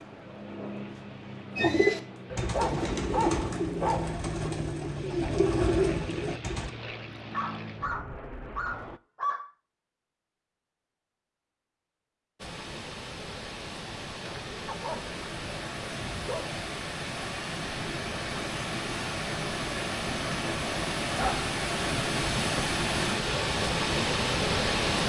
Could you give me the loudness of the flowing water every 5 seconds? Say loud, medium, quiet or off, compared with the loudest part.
off, off, medium, medium, loud.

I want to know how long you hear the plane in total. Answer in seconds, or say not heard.
9 s.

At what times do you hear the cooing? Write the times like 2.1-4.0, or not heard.
1.6-6.7.